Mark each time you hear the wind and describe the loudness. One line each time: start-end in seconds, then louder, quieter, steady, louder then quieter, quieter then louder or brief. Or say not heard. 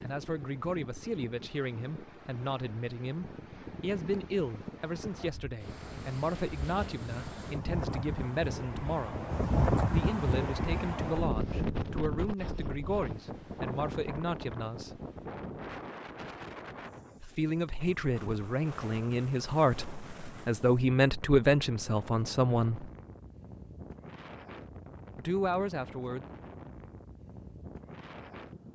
0.0-28.7 louder then quieter.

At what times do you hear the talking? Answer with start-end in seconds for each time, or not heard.
0.0-9.2, 9.9-14.9, 17.2-22.9, 25.1-26.2.